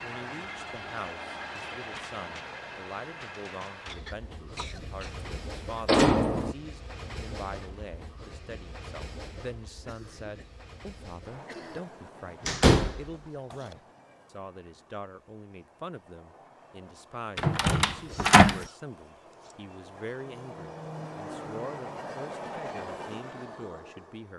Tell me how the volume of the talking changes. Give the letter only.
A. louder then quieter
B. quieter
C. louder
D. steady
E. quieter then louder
D.